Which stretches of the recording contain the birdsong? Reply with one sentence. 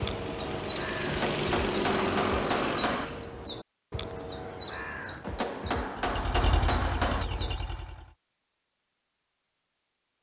You can hear the birdsong from 0.0 to 7.5 s.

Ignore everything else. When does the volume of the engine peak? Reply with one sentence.
The loudest moment of the engine is at 2 seconds.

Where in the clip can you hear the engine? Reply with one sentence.
The engine can be heard from 0.0 to 3.3 s and from 6.0 to 8.2 s.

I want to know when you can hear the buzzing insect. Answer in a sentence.
The buzzing insect can't be heard in this clip.